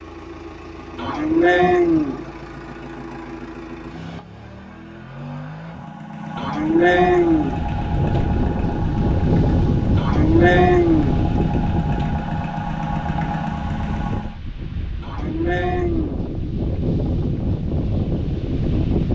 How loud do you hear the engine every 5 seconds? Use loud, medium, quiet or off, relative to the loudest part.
medium, loud, loud, off.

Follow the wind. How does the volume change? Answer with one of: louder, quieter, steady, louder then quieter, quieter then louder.
quieter then louder.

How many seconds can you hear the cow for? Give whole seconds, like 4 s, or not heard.
5 s.